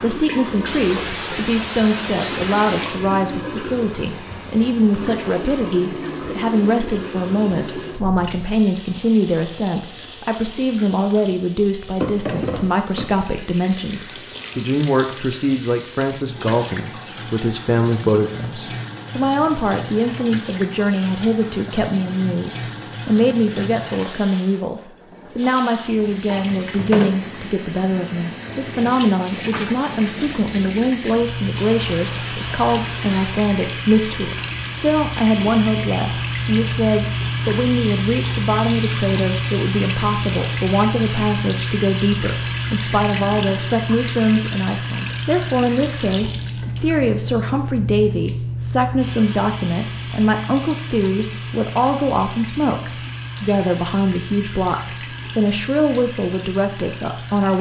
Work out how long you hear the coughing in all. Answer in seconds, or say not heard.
5 s.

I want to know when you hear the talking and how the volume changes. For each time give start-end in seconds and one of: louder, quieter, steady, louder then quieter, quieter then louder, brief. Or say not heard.
0.0-57.5 steady.